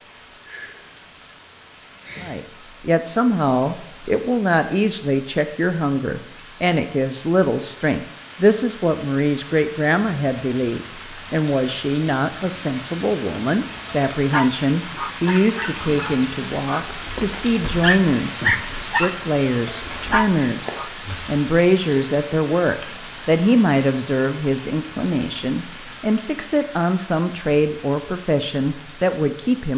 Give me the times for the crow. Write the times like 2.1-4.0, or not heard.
not heard.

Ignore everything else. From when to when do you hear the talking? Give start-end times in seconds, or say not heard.
2.2-29.7.